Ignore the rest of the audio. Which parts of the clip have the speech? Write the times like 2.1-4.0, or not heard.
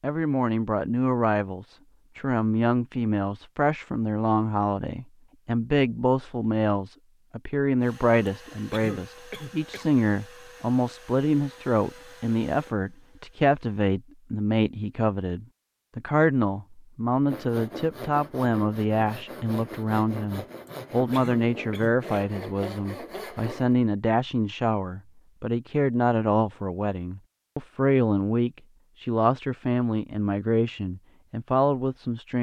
0.0-32.3.